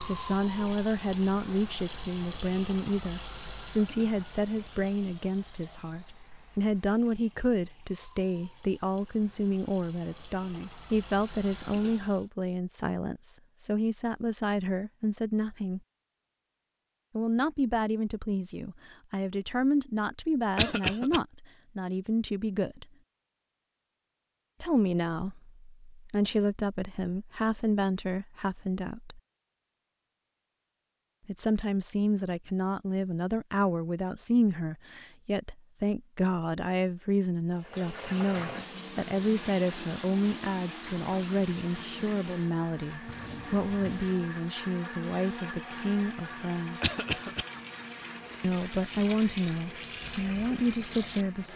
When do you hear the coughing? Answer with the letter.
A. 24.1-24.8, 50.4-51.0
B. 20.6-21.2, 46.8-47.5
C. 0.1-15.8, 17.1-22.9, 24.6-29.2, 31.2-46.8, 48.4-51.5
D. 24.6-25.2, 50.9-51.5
B.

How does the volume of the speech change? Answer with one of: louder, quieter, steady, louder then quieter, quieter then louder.
steady.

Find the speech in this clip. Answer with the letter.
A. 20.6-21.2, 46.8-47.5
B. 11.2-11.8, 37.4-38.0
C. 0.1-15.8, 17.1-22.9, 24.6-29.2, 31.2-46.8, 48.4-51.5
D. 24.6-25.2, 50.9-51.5
C.